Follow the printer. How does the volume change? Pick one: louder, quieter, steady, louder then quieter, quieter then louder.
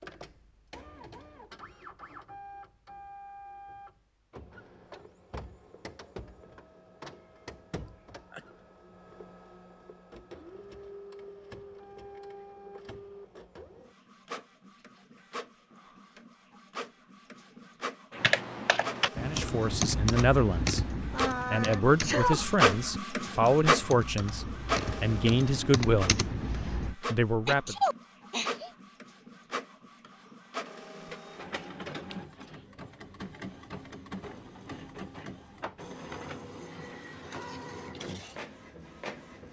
louder then quieter.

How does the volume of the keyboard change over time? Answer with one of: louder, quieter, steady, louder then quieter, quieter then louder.
quieter then louder.